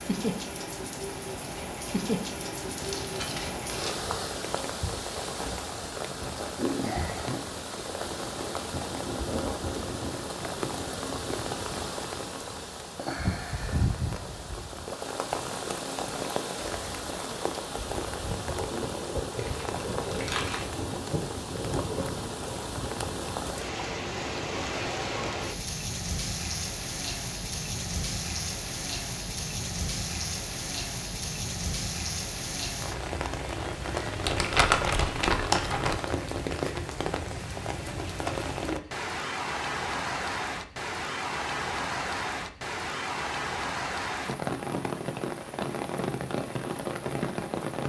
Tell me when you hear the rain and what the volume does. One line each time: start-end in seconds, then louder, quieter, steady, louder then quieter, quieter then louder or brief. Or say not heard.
0.0-47.8 steady.